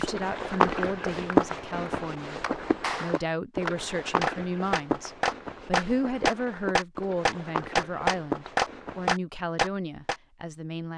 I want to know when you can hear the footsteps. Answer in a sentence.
The footsteps can be heard from 0.0 to 9.1 s.